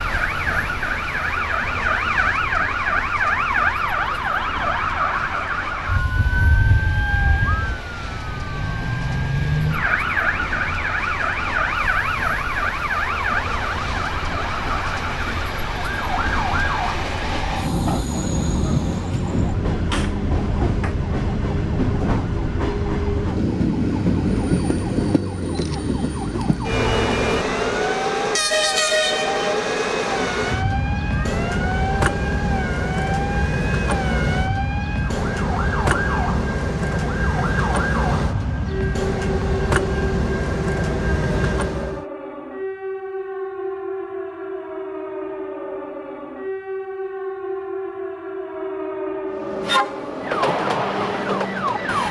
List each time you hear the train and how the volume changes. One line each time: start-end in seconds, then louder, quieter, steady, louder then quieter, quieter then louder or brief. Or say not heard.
0.0-42.0 louder
49.3-52.0 brief.